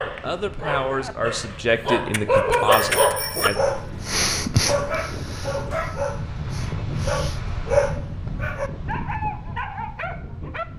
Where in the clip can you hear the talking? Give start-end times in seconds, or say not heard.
0.0-3.5.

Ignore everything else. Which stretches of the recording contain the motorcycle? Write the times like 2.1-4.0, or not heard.
not heard.